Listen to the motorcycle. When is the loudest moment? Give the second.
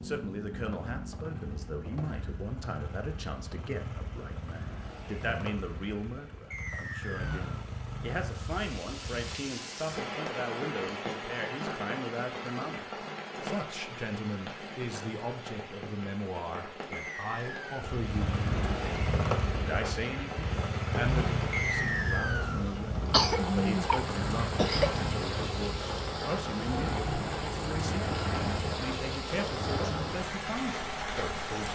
19 s.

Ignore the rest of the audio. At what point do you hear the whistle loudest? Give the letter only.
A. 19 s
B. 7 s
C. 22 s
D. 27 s
C.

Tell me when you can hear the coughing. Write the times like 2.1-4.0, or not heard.
23.1-25.0.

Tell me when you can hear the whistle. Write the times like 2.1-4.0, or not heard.
6.5-7.5, 16.9-17.8, 21.5-22.6.